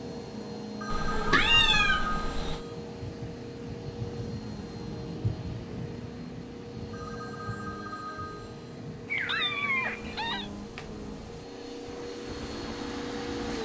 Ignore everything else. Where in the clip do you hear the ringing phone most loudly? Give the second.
2 s.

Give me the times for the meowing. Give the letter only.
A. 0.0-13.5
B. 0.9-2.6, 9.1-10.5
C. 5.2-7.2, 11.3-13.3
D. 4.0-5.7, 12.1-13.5
B.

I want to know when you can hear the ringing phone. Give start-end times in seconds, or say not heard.
0.8-2.8, 6.9-8.8.